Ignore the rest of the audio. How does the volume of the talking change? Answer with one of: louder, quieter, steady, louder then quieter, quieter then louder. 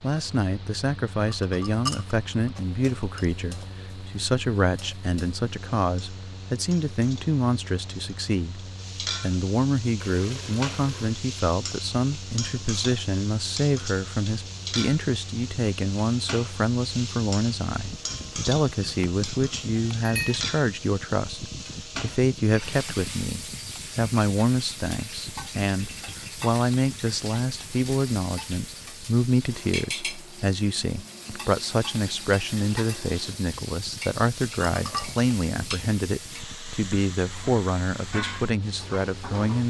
steady.